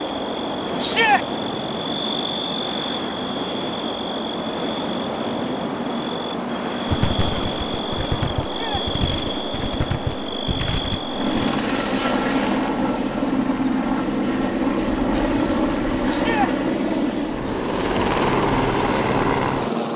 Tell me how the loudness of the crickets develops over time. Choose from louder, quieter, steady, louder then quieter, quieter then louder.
quieter.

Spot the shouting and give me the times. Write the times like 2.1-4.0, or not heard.
0.8-1.2, 8.4-8.8, 16.1-16.5.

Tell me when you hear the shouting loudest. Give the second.
1 s.